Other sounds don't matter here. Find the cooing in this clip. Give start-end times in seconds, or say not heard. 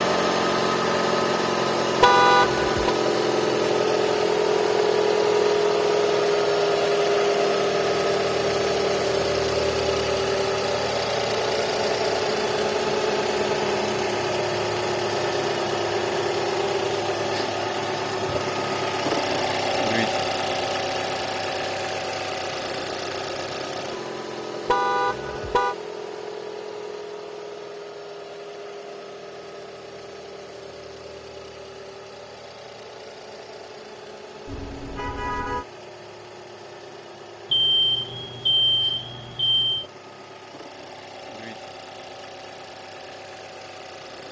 not heard.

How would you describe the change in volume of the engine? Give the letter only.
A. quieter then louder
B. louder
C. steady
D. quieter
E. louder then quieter
D.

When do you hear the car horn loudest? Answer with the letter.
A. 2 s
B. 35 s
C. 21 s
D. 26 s
A.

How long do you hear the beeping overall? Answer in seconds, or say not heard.
2 s.